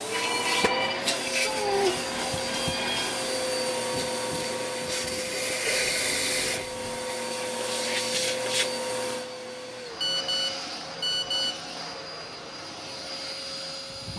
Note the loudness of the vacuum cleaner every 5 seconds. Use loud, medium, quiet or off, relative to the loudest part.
loud, loud, medium.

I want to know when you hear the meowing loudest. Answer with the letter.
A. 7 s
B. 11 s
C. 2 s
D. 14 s
C.